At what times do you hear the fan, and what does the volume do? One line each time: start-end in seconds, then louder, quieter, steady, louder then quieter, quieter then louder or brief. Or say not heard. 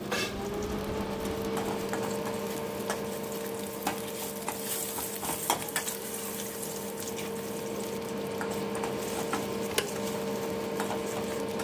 0.0-11.5 quieter then louder.